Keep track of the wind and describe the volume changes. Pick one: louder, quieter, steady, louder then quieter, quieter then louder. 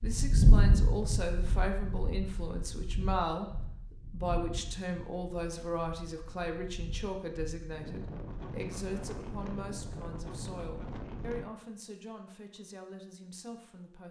quieter then louder.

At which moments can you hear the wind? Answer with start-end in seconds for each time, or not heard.
0.0-11.4.